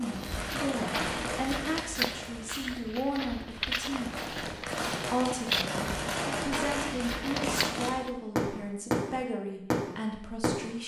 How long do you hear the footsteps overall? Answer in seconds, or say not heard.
8 s.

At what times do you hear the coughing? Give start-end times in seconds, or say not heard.
not heard.